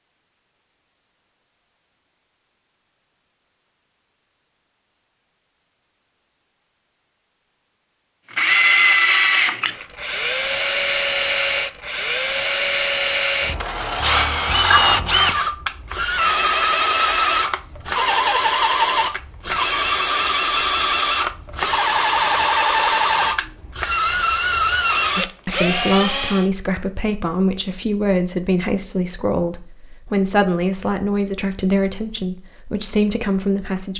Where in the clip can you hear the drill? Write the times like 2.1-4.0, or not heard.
8.3-26.5.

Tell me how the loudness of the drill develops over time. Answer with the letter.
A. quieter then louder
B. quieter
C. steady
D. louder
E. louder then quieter
C.